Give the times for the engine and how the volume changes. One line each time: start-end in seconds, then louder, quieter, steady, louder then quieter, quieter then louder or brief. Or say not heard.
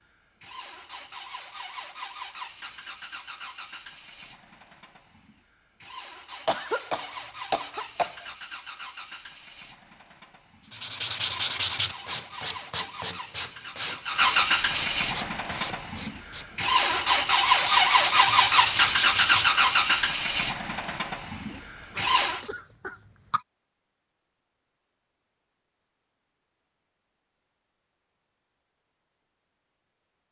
0.1-22.4 louder.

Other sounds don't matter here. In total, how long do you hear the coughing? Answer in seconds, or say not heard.
4 s.